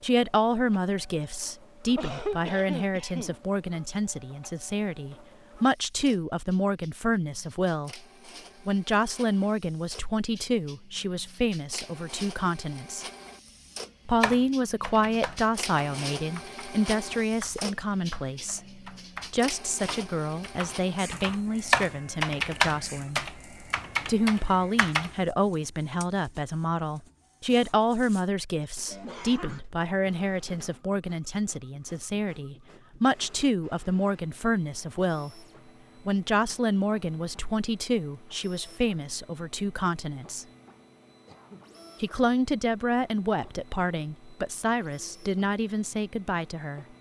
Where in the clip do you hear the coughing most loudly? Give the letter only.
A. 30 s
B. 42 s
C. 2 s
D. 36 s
C.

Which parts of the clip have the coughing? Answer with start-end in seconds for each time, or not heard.
1.9-3.4, 28.9-29.6, 41.2-41.7.